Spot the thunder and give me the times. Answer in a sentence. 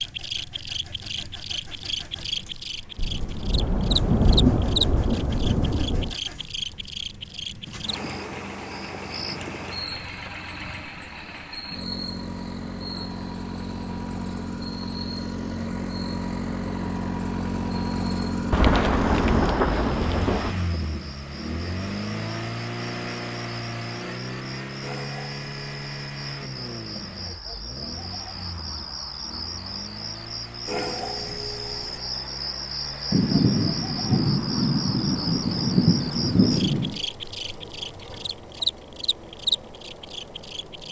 The thunder can be heard from 3.0 to 6.2 s, from 18.5 to 20.6 s and from 33.1 to 37.0 s.